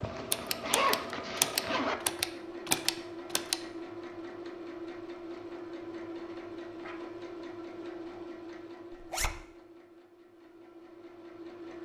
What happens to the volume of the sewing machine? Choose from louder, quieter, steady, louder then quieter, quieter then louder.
quieter.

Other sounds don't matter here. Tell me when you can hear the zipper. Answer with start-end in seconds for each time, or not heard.
0.0-1.9, 8.9-9.3.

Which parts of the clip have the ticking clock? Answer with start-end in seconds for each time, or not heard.
not heard.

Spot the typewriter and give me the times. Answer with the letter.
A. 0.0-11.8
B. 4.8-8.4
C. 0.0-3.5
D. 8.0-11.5
C.